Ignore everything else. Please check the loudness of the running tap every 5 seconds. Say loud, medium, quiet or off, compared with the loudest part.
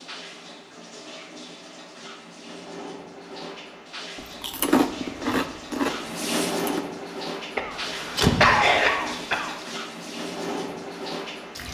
medium, loud, loud.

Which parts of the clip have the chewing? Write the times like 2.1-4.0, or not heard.
4.2-6.8.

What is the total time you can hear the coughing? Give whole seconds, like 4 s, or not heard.
2 s.